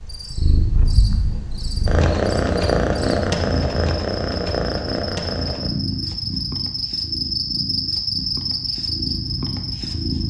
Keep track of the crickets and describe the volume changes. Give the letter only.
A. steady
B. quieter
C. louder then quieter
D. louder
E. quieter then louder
D.